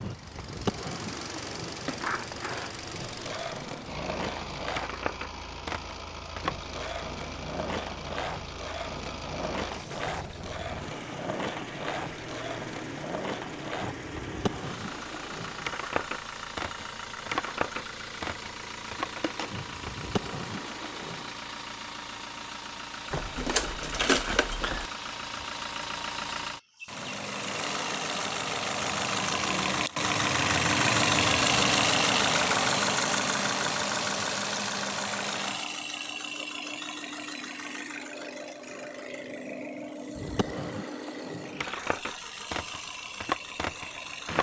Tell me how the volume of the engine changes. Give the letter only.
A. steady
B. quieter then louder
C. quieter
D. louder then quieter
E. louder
D.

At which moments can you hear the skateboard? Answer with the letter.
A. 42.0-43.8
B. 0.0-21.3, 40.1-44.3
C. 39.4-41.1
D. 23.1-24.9
B.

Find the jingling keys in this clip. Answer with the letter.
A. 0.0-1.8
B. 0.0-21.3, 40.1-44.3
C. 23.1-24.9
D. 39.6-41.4
C.